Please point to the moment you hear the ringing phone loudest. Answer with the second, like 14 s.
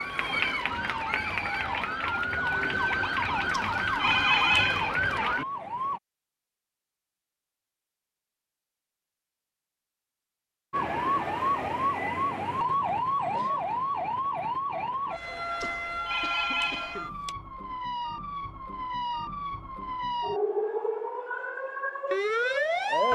4 s.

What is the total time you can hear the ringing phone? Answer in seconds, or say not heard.
3 s.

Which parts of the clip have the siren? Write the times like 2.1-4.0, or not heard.
0.0-6.0, 10.7-23.1.